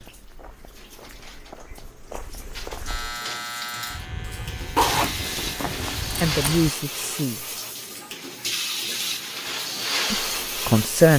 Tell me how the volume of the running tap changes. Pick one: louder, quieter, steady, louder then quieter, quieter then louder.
louder.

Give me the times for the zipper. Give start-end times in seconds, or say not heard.
4.8-6.7.